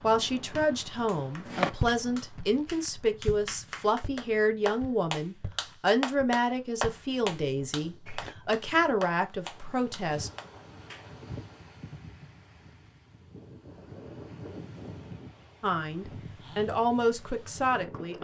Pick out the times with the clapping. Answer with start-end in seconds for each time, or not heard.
0.6-11.1.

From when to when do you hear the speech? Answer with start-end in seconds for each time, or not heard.
0.0-10.3, 15.6-18.1.